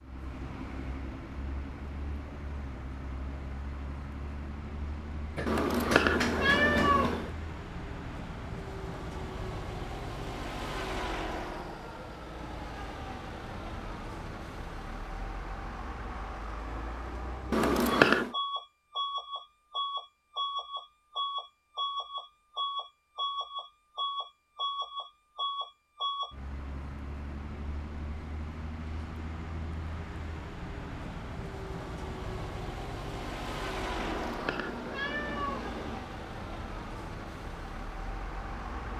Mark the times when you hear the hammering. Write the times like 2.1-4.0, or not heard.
5.3-7.0.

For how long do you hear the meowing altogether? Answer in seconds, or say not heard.
5 s.